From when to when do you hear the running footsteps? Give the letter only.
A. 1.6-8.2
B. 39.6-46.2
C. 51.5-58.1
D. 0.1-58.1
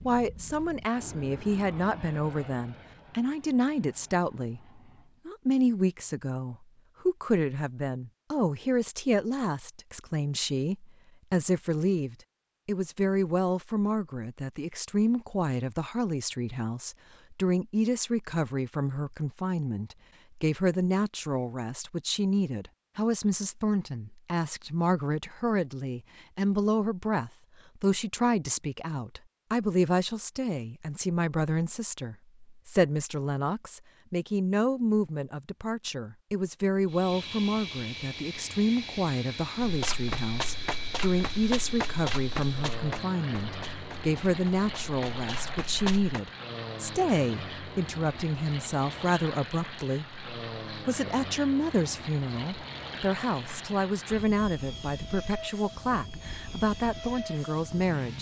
B.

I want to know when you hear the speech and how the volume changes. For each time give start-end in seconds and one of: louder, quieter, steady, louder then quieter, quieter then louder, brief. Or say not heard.
0.1-58.1 steady.